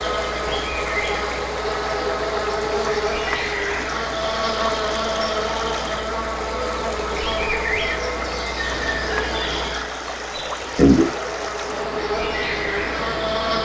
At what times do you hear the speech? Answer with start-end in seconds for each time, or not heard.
not heard.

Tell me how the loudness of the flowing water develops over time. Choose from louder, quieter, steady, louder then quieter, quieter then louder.
steady.